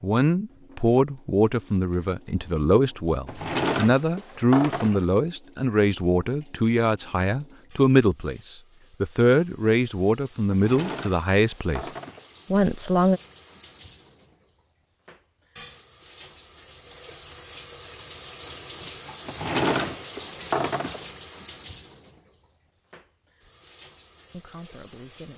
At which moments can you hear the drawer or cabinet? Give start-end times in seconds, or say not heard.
3.2-5.0, 10.5-12.2, 19.2-21.1.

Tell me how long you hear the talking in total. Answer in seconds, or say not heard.
14 s.